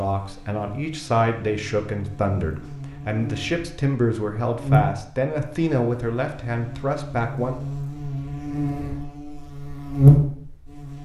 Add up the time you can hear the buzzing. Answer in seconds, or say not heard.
11 s.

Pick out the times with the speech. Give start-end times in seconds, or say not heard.
0.0-7.6.